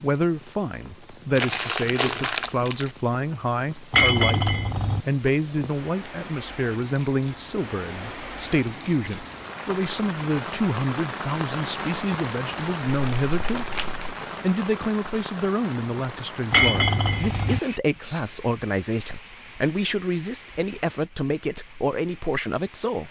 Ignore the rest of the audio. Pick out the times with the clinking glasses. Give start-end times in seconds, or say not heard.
3.9-5.0, 16.5-17.6.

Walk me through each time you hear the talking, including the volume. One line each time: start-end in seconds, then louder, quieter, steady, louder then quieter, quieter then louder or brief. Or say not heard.
0.0-13.8 steady
14.4-23.0 steady.